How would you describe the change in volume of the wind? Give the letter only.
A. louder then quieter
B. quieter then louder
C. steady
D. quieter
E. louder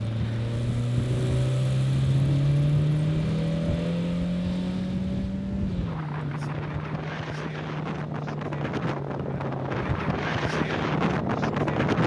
E.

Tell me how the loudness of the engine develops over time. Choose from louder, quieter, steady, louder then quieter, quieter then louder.
quieter.